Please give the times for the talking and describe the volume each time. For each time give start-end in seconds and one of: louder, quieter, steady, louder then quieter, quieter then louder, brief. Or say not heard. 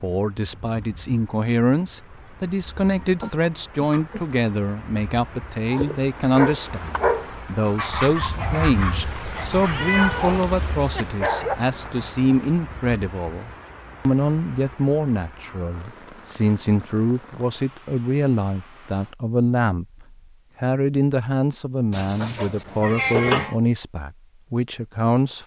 0.0-25.4 steady.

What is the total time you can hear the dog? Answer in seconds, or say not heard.
6 s.